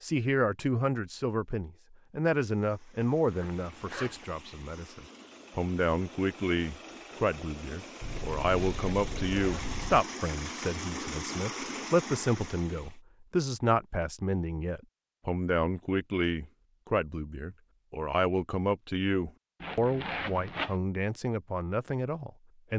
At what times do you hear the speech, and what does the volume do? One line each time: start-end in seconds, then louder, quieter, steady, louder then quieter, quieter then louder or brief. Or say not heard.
0.0-22.7 steady.